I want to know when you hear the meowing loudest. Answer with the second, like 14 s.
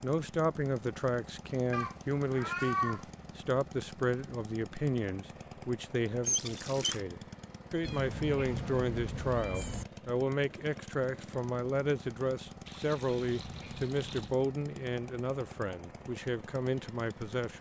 3 s.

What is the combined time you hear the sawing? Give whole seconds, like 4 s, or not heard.
not heard.